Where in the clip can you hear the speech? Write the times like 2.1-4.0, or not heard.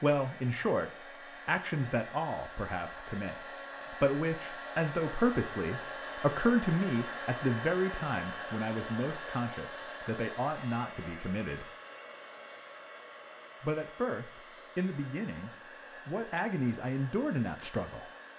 0.0-11.7, 13.6-18.1.